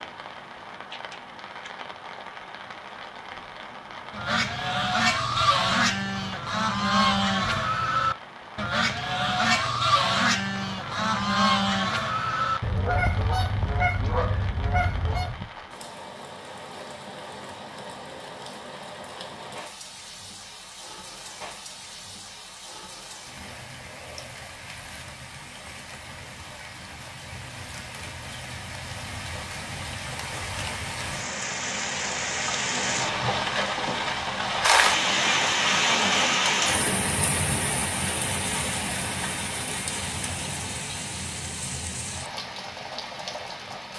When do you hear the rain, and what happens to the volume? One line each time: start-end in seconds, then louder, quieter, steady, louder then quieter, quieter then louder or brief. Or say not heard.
0.0-43.9 louder.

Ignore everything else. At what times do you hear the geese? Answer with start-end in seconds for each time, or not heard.
4.1-15.4.